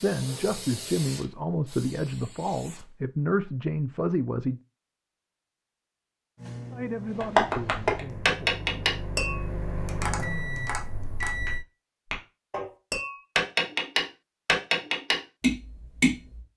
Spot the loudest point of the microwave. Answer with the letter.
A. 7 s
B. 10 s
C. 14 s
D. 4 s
B.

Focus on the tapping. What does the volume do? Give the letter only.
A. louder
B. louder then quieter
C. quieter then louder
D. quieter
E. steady
C.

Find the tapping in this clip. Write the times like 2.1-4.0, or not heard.
7.2-16.4.